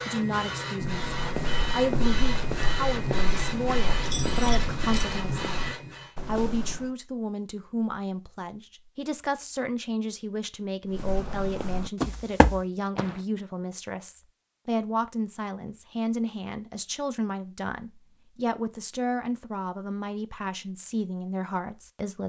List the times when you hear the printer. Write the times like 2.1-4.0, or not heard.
0.0-6.2.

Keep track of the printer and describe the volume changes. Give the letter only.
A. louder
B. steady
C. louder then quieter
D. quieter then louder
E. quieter
B.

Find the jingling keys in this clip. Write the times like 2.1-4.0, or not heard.
4.0-5.2.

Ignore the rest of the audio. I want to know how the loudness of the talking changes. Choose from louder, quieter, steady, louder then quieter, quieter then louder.
steady.